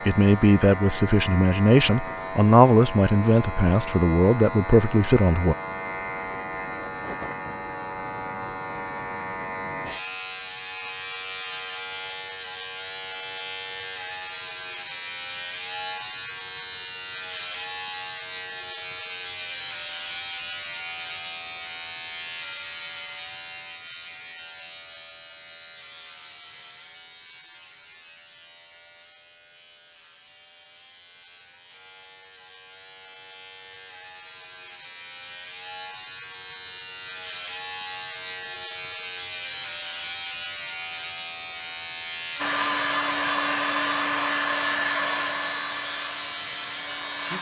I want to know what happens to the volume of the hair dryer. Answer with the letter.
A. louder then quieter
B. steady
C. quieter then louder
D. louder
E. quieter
E.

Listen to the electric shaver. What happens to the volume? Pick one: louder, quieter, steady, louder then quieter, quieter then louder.
quieter then louder.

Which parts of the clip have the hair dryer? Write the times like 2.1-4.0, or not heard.
42.4-47.3.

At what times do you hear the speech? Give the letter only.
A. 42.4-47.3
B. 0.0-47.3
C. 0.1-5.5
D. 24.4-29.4
C.